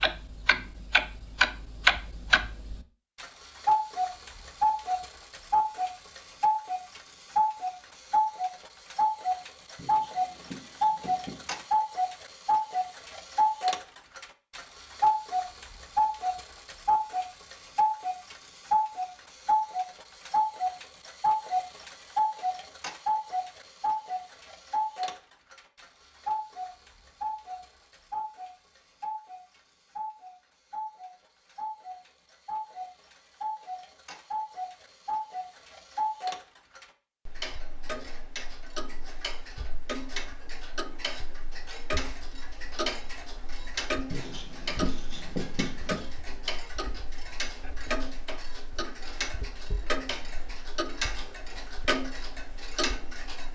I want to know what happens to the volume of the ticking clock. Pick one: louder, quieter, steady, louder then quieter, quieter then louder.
quieter.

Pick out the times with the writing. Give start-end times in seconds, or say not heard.
9.8-11.6, 44.1-46.1.